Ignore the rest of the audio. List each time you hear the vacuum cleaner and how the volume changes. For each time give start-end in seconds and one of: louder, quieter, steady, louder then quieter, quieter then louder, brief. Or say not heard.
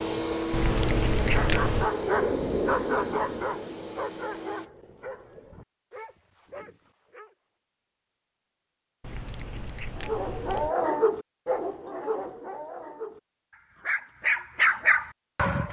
0.0-4.7 quieter.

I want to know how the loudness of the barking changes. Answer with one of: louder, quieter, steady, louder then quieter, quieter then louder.
quieter then louder.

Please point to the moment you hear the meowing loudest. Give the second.
1 s.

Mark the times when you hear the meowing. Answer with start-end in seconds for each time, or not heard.
0.5-1.9, 9.0-10.8.